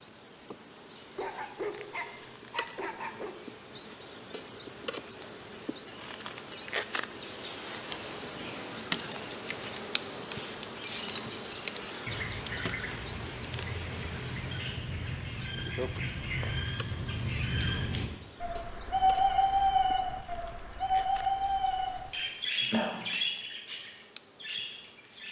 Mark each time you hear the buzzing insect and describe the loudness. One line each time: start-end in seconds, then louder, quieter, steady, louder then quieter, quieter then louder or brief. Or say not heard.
0.0-25.2 louder then quieter.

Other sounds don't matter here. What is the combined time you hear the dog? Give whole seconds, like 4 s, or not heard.
2 s.